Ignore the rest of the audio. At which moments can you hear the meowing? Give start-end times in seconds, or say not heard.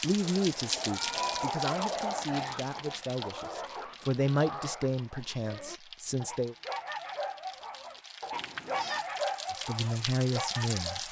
0.8-1.8, 8.3-9.1.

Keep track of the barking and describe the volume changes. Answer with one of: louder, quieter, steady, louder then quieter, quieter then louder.
quieter then louder.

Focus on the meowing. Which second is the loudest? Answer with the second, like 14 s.
1 s.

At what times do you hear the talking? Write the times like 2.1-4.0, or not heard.
0.0-6.5, 9.5-11.0.